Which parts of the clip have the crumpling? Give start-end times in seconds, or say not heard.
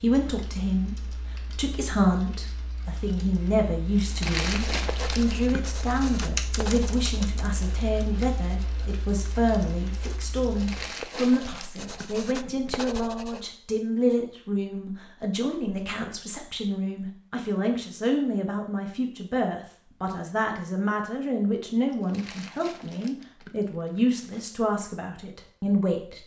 4.0-5.8, 10.4-12.3, 21.9-24.4.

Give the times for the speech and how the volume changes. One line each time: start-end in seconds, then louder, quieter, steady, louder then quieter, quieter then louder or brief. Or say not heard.
0.0-26.2 steady.